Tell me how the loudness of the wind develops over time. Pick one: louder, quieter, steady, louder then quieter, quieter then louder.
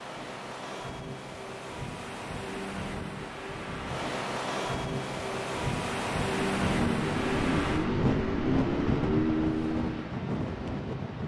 louder.